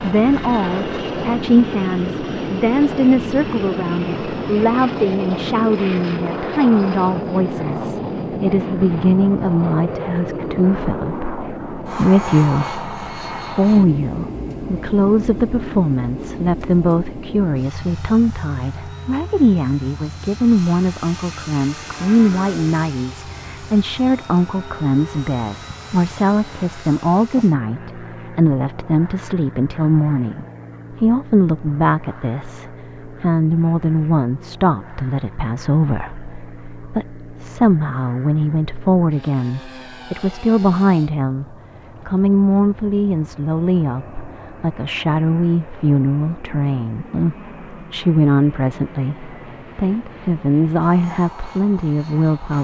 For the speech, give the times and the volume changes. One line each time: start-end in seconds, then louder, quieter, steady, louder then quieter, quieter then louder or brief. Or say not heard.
0.0-52.5 steady.